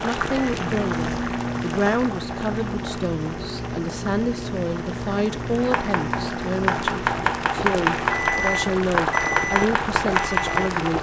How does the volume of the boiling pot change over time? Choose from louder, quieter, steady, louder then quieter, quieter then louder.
quieter then louder.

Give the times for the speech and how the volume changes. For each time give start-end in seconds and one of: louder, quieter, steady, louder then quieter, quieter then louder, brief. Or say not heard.
0.0-10.9 steady.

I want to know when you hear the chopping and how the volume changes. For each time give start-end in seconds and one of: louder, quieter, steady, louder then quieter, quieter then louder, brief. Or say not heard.
5.6-10.8 steady.